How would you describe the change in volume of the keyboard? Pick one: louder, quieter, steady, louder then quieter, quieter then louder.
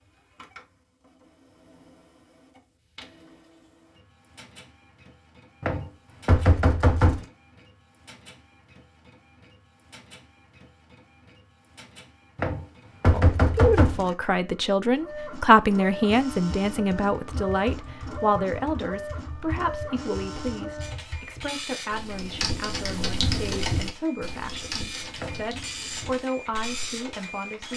louder then quieter.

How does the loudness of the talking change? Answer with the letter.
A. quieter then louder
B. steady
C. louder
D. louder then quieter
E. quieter
E.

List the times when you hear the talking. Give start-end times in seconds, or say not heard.
13.1-27.7.